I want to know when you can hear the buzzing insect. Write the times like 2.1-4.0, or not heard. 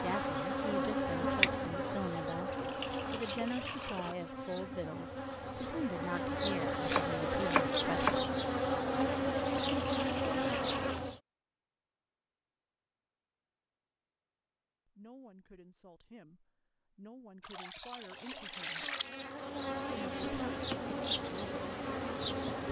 0.0-11.2, 17.9-22.6.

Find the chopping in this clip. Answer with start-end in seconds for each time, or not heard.
6.8-8.2.